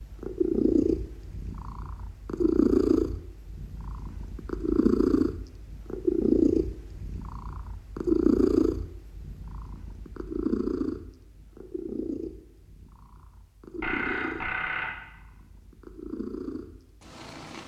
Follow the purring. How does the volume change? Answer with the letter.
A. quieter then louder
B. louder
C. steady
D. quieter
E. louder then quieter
D.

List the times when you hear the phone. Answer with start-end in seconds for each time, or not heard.
13.8-14.9.